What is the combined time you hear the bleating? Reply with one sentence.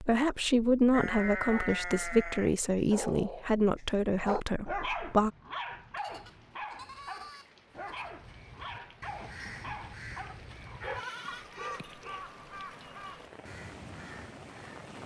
You can hear the bleating for 5 seconds altogether.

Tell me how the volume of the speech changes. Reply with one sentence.
The volume of the speech goes down.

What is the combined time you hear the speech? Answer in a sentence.
You can hear the speech for 5 seconds altogether.